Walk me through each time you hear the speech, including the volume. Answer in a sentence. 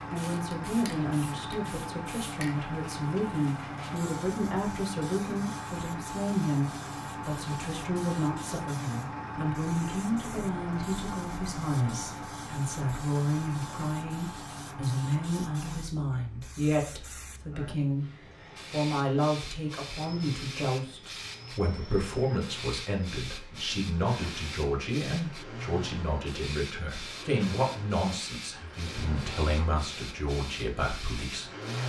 The speech can be heard from 0.1 to 18.1 s, at a steady volume; and from 18.7 to 31.8 s, at a steady volume.